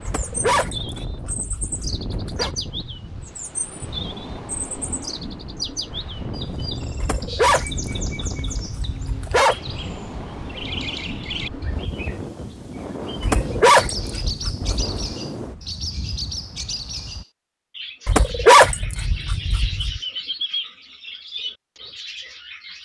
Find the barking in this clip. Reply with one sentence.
The barking can be heard from 0.1 to 2.5 s, from 7.0 to 9.6 s, from 13.2 to 15.2 s and from 18.1 to 20.0 s.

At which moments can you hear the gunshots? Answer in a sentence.
The gunshots can't be heard in this clip.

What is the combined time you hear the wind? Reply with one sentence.
You can hear the wind for 17 seconds altogether.